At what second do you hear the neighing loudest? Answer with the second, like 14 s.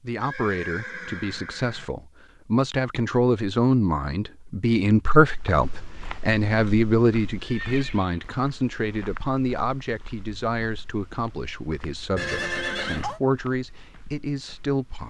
13 s.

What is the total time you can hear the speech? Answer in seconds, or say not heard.
15 s.